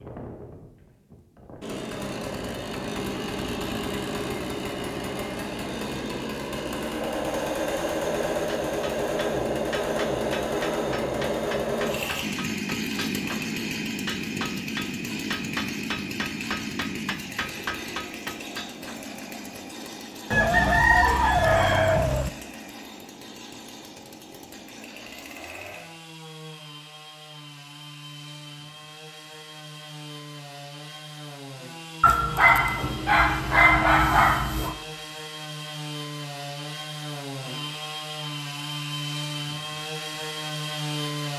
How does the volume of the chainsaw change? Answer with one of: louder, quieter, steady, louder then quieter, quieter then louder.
quieter then louder.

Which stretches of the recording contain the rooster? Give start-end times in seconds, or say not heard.
20.3-22.3.